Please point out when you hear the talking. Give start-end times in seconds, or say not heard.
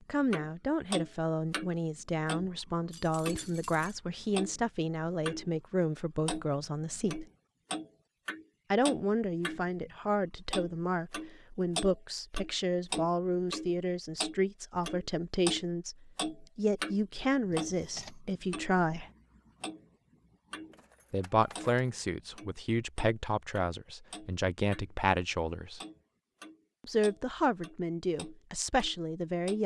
0.1-7.2, 8.7-19.1, 21.1-25.8, 26.8-29.6.